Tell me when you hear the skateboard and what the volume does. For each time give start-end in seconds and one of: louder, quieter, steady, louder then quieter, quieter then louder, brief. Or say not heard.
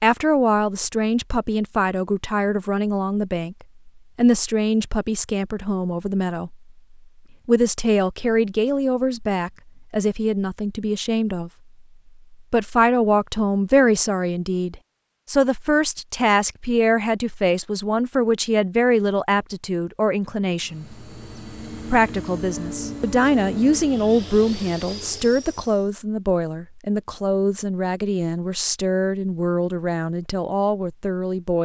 not heard.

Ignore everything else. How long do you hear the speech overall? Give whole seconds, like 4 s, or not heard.
29 s.